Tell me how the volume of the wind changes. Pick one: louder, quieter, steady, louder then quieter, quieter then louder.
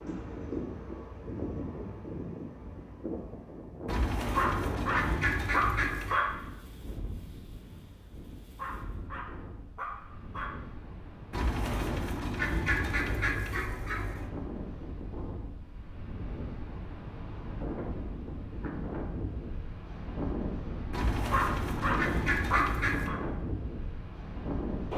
quieter then louder.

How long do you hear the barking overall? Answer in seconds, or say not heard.
6 s.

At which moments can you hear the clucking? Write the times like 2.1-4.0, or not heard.
3.9-6.2, 11.3-14.3, 20.9-23.1.